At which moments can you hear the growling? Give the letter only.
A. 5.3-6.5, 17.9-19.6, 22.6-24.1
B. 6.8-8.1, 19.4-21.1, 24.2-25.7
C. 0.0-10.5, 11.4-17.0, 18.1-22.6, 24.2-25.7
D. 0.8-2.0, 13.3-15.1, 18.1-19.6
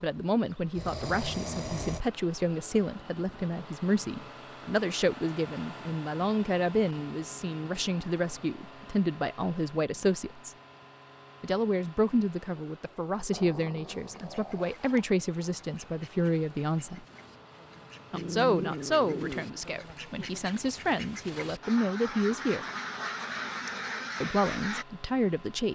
D.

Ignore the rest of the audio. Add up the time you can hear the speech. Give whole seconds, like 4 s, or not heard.
22 s.